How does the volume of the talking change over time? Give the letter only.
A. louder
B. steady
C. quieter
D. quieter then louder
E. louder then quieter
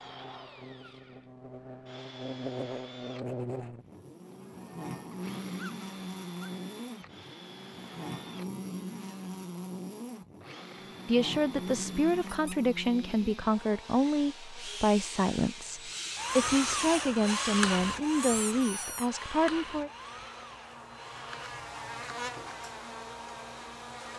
B.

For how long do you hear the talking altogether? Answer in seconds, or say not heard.
9 s.